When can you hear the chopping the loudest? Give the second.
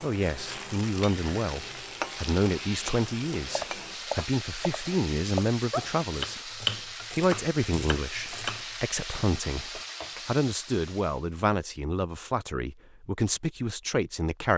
7 s.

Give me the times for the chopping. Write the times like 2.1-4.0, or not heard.
3.5-8.7.